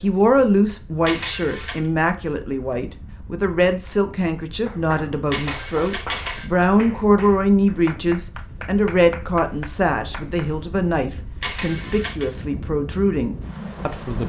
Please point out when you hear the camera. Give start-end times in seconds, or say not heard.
1.1-1.8, 5.3-6.5, 11.4-12.2.